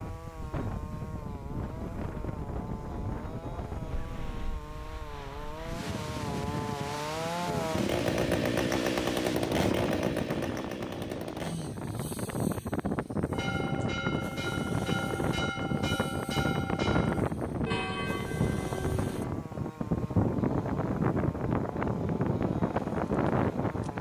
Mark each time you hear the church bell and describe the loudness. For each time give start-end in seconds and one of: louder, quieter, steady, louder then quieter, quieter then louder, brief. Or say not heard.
13.3-19.4 steady.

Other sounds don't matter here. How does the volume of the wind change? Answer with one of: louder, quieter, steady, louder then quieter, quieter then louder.
louder.